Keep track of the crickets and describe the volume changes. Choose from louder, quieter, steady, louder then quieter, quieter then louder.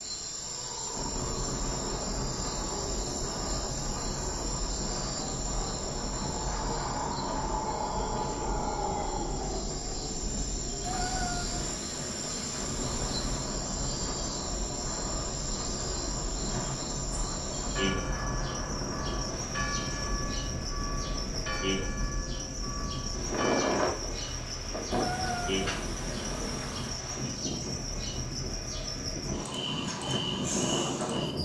steady.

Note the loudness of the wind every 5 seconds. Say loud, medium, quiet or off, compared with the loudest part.
medium, medium, medium, medium, loud, medium, loud.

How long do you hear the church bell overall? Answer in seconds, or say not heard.
6 s.